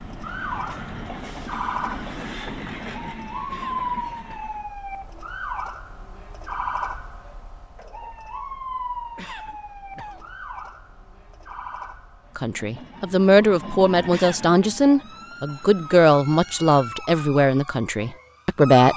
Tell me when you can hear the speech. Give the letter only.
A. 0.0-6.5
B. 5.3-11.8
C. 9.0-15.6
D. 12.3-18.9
D.